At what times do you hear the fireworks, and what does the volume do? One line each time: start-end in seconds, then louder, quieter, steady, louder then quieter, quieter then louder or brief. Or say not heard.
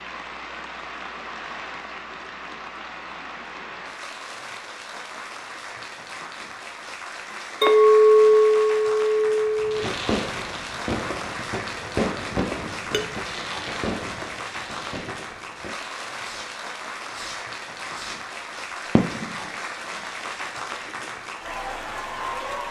9.6-18.2 quieter
18.9-19.5 brief.